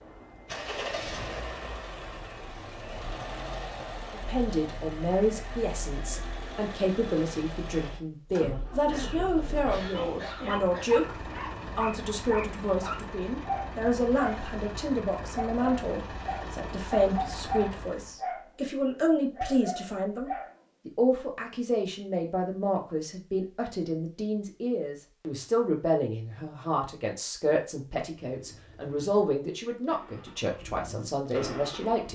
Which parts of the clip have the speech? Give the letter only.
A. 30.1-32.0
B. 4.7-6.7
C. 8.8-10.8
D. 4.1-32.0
D.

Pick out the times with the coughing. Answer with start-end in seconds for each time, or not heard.
8.8-10.8.